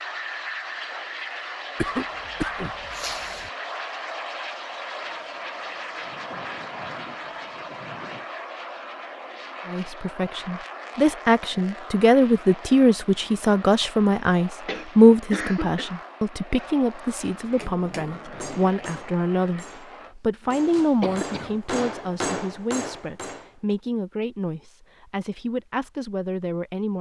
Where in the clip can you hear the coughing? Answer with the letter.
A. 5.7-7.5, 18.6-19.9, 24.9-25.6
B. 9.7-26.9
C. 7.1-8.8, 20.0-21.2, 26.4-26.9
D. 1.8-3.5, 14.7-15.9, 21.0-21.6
D.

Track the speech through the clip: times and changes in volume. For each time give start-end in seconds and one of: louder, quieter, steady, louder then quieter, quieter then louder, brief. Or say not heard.
9.7-26.9 quieter.